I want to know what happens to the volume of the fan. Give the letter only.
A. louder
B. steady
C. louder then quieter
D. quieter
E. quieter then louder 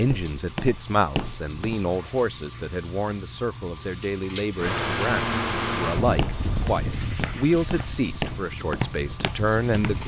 D.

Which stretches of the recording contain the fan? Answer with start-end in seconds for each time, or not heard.
4.5-10.0.